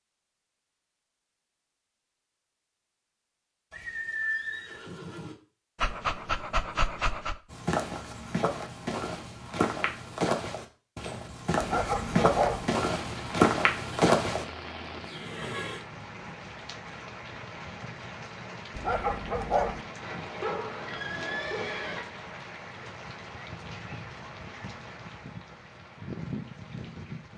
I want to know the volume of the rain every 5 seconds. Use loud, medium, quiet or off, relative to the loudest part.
off, off, loud, loud, loud, loud.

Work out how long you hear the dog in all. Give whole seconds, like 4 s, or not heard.
4 s.